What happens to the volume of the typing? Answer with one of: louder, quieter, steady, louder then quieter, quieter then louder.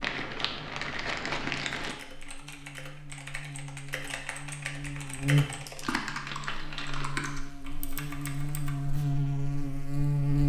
louder then quieter.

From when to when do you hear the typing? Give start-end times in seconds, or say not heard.
1.8-9.2.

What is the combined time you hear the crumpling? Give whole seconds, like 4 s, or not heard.
3 s.